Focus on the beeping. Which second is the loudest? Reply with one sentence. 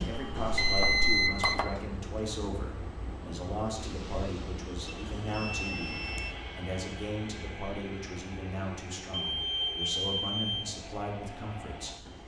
The volume of the beeping peaks at 1 second.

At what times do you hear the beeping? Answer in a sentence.
You can hear the beeping from 0.1 to 1.6 s, from 4.8 to 6.3 s and from 9.2 to 10.7 s.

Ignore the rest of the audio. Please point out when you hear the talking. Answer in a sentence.
The talking can be heard from 0.1 to 12.2 s.